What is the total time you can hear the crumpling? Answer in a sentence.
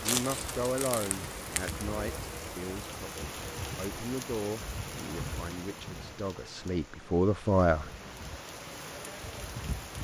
The crumpling can be heard for 2 seconds in total.